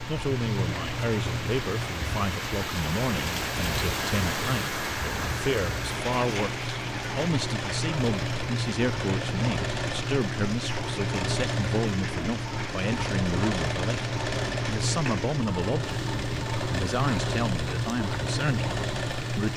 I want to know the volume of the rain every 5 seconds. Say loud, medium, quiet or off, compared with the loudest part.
loud, loud, medium, medium.